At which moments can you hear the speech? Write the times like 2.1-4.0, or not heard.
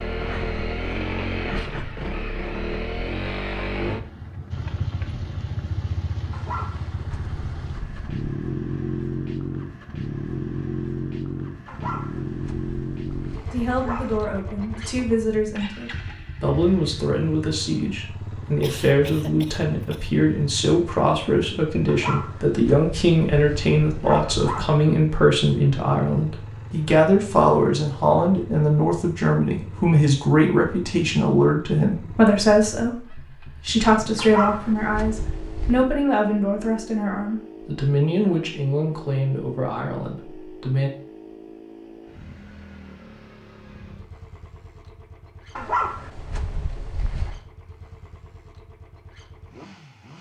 13.5-40.9.